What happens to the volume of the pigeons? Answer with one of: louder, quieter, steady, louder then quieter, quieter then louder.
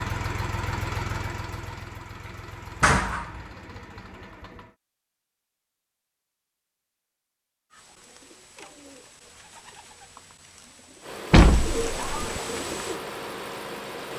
louder.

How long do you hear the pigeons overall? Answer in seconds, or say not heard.
5 s.